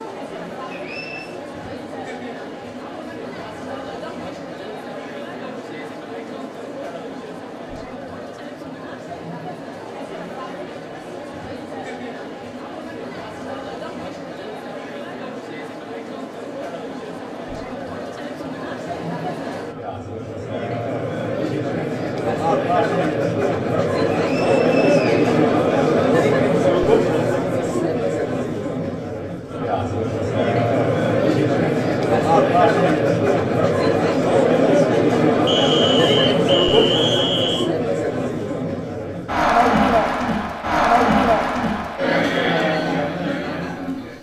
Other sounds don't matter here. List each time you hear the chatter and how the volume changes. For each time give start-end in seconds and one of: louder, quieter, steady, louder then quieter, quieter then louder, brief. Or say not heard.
0.0-44.1 louder.